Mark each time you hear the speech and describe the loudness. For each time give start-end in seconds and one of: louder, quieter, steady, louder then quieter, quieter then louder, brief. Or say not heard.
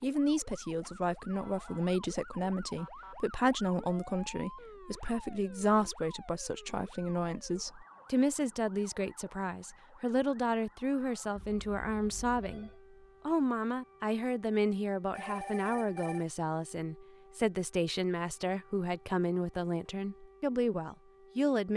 0.0-21.7 steady.